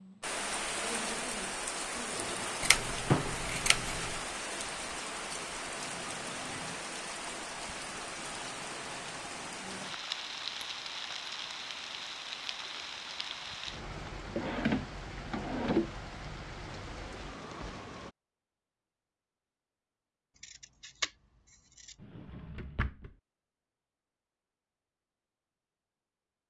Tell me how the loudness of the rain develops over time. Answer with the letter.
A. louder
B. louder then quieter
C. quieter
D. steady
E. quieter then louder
C.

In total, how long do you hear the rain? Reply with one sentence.
You can hear the rain for 18 seconds altogether.